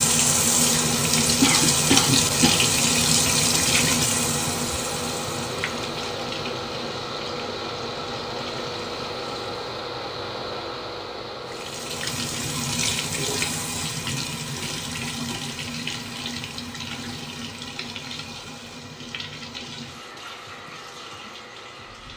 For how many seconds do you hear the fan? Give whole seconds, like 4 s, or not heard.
22 s.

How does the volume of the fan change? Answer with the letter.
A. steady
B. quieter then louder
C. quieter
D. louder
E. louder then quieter
C.